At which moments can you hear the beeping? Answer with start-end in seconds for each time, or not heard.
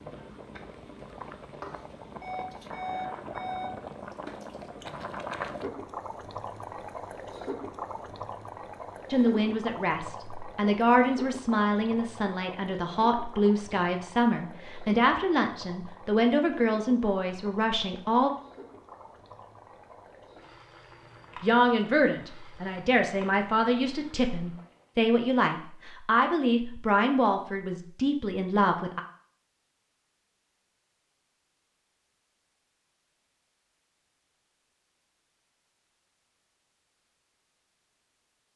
2.2-3.7.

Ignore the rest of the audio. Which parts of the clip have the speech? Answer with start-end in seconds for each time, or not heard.
9.1-18.3, 21.4-29.0.